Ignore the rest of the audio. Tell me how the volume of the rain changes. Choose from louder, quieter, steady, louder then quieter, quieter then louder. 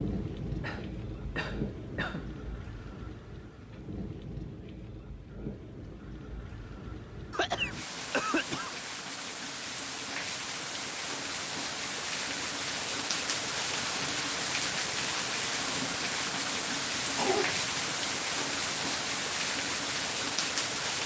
louder.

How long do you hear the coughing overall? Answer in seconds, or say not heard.
4 s.